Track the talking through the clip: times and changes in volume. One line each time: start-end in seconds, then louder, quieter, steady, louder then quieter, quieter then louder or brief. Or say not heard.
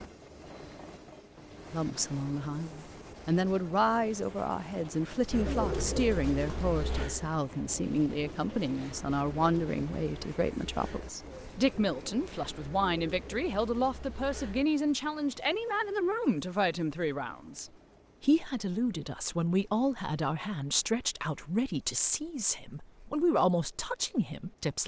1.7-24.8 steady.